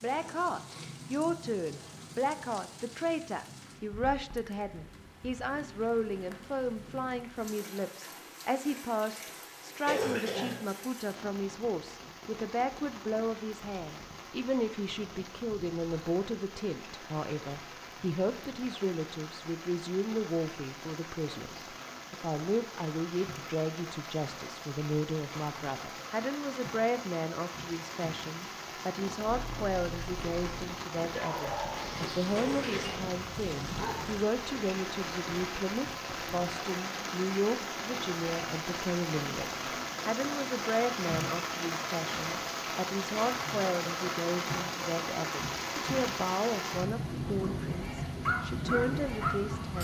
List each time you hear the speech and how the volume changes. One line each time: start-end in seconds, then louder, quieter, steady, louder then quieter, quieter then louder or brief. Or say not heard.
0.0-49.8 steady.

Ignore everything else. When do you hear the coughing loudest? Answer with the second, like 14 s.
10 s.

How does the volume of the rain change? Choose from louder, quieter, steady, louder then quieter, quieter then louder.
louder.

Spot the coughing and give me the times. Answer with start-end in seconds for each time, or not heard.
9.8-10.6, 32.4-33.0.